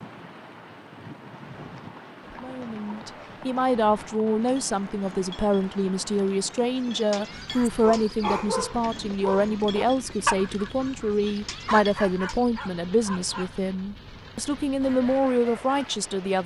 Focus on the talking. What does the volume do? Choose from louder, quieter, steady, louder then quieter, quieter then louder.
steady.